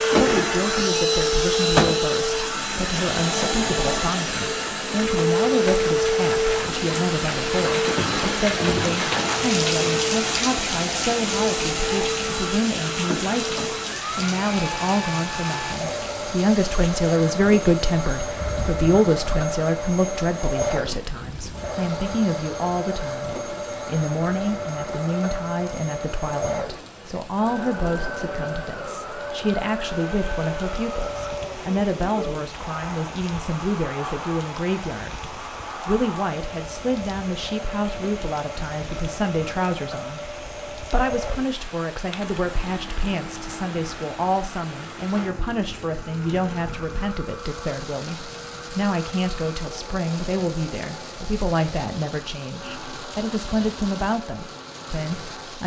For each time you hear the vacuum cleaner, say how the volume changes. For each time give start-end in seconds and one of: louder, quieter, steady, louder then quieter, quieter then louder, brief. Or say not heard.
0.0-55.6 quieter.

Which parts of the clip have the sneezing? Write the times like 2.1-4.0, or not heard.
not heard.